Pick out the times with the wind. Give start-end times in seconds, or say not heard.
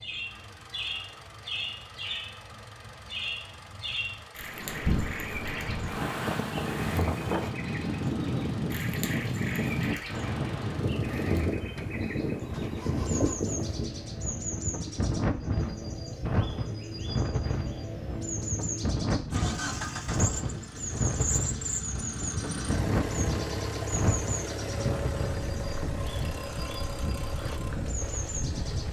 4.3-28.8.